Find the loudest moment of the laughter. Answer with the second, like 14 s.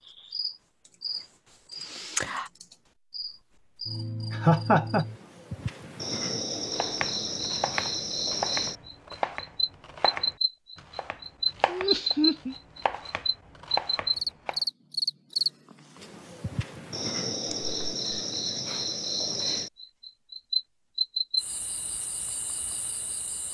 5 s.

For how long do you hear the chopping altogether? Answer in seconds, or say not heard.
8 s.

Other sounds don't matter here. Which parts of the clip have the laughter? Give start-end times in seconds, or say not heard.
4.3-5.0, 11.7-12.6, 17.5-18.2.